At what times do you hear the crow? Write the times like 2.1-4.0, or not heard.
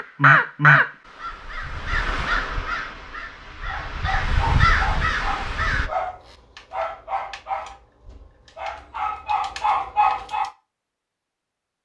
0.0-5.9.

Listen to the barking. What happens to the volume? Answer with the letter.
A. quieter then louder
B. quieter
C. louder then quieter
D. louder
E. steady
A.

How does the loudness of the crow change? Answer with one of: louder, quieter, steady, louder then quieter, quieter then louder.
quieter then louder.